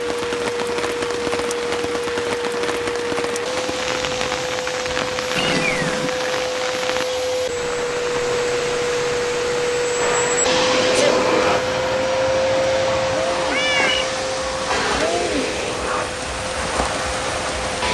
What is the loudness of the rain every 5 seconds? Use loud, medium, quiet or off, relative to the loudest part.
loud, loud, medium, loud.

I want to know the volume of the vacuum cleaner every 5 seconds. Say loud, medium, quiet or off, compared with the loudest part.
medium, loud, loud, medium.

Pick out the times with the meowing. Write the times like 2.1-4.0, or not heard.
5.3-6.2, 13.5-14.1.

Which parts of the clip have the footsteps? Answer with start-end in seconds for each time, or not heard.
not heard.